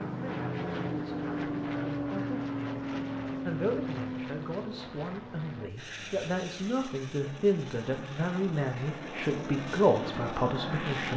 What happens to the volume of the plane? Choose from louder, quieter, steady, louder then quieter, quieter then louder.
quieter then louder.